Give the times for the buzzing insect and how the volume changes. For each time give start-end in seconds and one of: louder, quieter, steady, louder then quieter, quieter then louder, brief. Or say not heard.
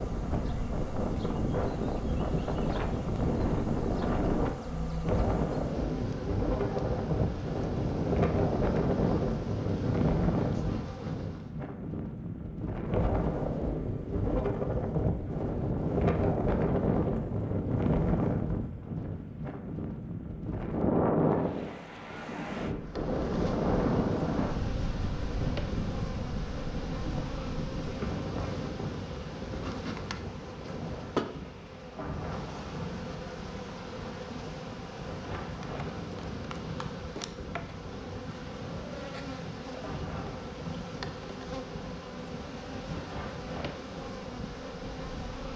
0.0-11.6 steady
22.8-45.5 steady.